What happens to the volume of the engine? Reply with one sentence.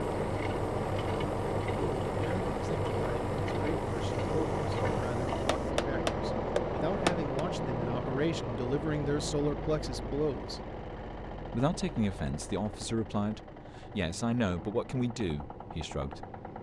The volume of the engine goes down.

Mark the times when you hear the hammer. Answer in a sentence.
You can hear the hammer from 5.5 to 7.5 s.